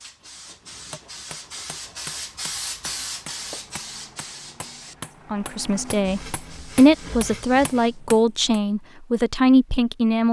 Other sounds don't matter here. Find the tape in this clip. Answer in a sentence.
You can't hear the tape here.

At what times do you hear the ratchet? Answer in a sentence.
You can't hear the ratchet here.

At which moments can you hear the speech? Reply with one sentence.
The speech can be heard from 5.3 to 10.2 s.